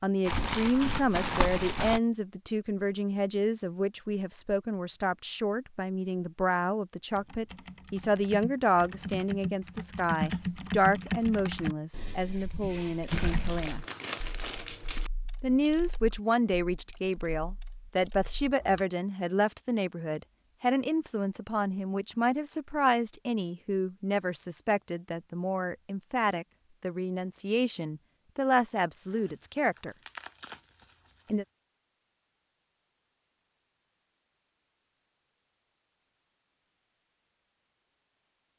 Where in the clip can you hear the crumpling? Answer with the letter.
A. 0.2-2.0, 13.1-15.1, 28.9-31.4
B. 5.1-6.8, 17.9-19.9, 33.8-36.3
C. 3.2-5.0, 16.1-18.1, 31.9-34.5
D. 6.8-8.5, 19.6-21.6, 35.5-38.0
A.